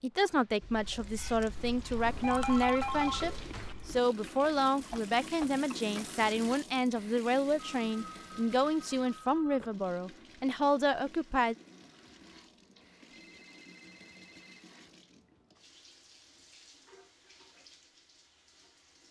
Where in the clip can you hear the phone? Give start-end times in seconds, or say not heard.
2.0-3.8, 7.6-9.8, 13.1-14.7.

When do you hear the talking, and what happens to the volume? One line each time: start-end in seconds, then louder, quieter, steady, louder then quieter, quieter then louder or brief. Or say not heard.
0.0-11.6 steady.